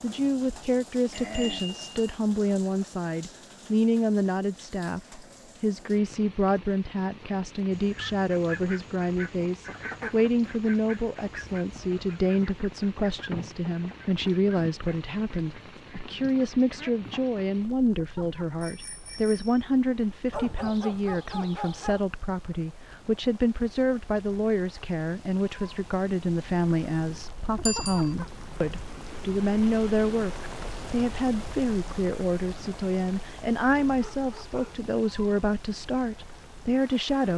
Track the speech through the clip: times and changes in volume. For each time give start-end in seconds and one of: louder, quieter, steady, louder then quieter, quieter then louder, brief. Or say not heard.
0.0-37.3 steady.